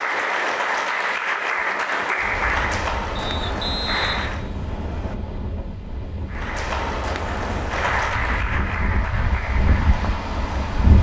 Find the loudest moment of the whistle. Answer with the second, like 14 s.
4 s.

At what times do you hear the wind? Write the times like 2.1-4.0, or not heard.
2.1-10.9.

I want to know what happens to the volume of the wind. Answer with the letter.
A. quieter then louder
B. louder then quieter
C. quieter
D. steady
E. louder
E.